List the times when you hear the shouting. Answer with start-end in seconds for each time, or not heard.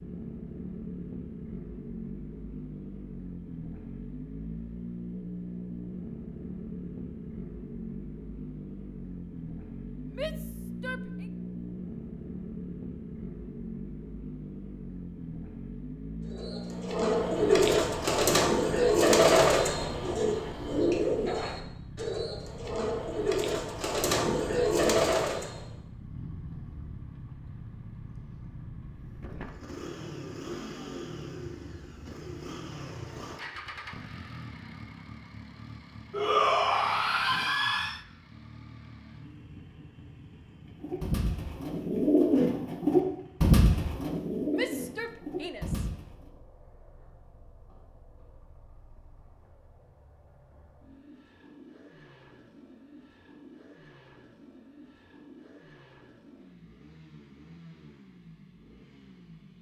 10.1-11.2, 36.1-38.0, 44.5-45.9.